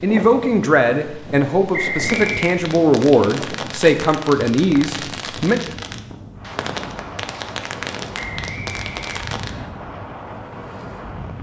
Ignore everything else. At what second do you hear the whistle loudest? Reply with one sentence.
The volume of the whistle peaks at 2 seconds.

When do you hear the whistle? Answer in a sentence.
The whistle can be heard from 1.7 to 2.6 s and from 8.2 to 9.7 s.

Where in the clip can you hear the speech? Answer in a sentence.
You can hear the speech from 0.0 to 5.6 s.